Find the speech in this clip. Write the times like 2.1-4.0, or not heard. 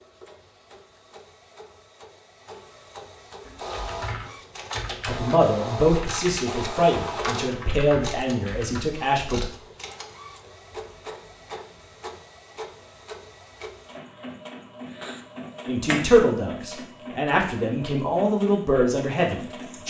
5.0-9.4, 15.7-19.8.